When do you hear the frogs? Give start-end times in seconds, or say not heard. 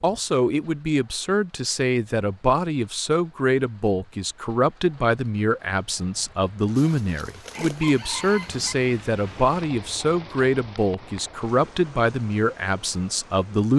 not heard.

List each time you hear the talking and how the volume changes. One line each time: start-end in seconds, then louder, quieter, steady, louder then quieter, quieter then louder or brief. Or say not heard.
0.0-13.7 steady.